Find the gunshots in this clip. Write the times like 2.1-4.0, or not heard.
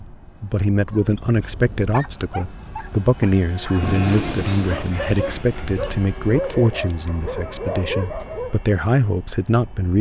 3.8-5.4.